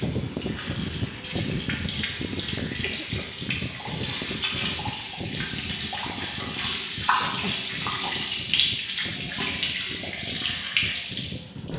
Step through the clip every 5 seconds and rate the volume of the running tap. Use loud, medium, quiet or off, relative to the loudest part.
medium, loud, loud.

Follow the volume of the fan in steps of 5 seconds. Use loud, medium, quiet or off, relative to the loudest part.
loud, medium, medium.